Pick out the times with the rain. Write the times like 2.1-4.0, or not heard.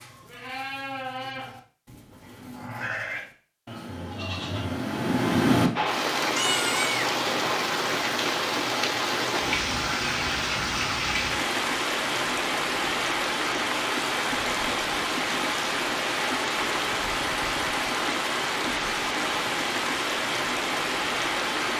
5.8-21.7.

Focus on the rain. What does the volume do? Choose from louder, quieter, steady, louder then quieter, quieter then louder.
steady.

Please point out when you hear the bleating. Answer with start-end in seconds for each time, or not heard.
0.0-7.1.